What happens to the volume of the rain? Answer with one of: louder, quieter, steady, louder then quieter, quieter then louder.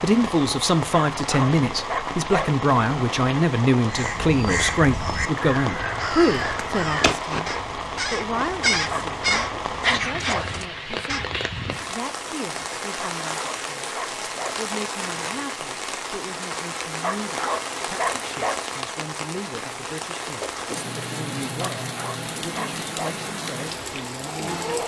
steady.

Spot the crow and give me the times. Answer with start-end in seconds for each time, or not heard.
3.9-11.3.